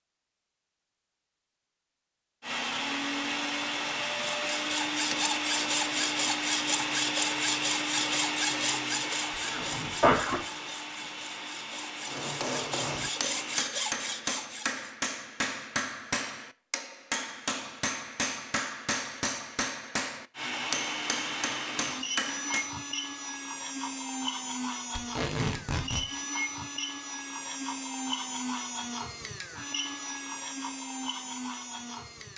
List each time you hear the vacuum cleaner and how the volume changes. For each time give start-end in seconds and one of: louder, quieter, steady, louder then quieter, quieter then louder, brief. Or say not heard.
2.4-13.7 quieter
20.4-32.3 steady.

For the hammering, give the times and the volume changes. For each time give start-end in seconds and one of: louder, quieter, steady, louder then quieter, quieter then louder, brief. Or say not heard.
12.1-22.7 steady.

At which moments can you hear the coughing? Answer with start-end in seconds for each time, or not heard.
9.4-10.4.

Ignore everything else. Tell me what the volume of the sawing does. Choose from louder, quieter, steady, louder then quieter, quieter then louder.
quieter then louder.